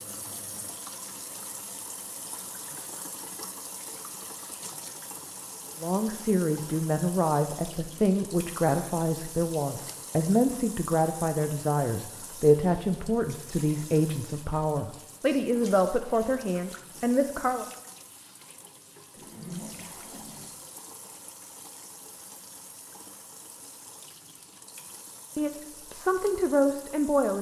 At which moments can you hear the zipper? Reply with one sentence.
The zipper can be heard from 19.1 to 20.6 s.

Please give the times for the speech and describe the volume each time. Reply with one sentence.
You can hear the speech from 5.8 to 17.6 s, at a steady volume; and briefly from 25.4 to 27.3 s.